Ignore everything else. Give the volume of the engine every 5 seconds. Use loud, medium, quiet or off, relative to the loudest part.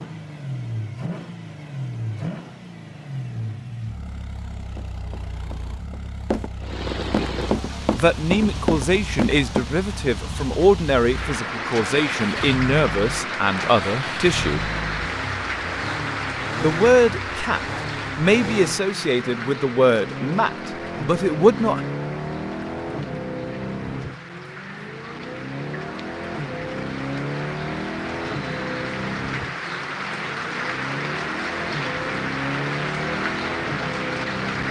loud, medium, loud, loud, loud, loud, loud.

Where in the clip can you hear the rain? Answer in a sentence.
The rain can be heard from 6.6 to 34.6 s.